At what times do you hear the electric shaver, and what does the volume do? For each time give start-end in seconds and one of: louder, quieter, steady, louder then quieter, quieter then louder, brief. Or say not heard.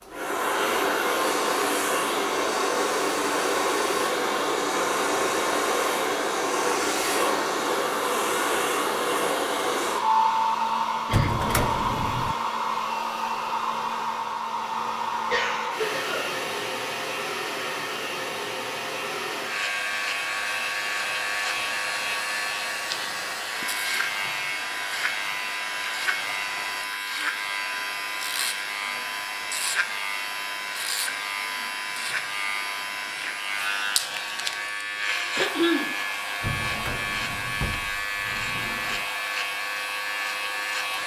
19.4-41.0 steady.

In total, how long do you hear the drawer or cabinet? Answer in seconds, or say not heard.
4 s.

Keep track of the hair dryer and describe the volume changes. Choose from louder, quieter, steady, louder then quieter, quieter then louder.
quieter.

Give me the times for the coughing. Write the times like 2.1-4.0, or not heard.
11.1-11.5, 15.3-16.4, 35.4-35.9.